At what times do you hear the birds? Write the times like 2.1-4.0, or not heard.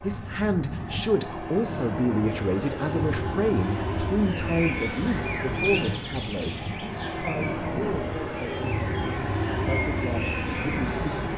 4.2-11.2.